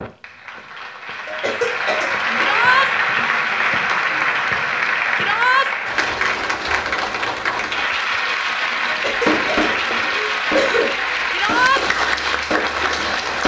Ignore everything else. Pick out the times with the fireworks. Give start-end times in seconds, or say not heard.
9.2-13.4.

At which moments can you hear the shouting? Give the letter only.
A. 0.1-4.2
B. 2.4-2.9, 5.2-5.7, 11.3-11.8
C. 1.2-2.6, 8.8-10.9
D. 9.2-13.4
B.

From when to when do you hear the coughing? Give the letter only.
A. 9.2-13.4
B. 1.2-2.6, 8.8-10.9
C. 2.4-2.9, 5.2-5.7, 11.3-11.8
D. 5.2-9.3
B.